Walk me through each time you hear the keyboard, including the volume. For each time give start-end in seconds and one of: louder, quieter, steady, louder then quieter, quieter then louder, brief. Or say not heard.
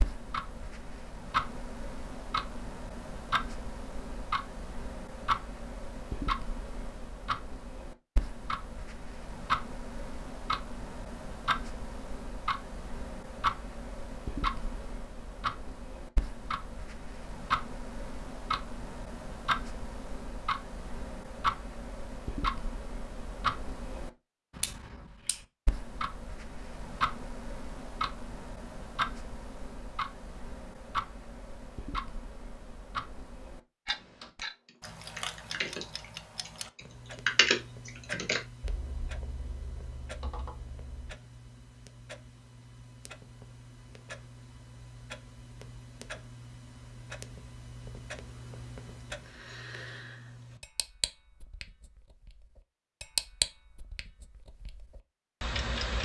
33.9-41.1 louder then quieter.